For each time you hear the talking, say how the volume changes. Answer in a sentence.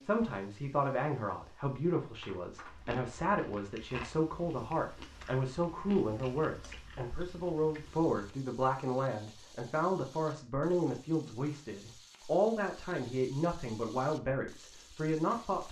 You can hear the talking from 0.0 to 15.6 s, at a steady volume.